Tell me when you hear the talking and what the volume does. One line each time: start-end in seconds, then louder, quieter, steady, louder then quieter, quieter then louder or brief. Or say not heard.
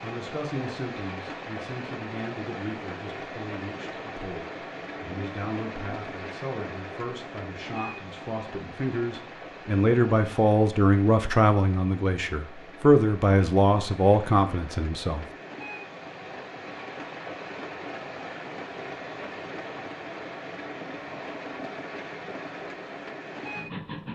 0.0-15.2 louder.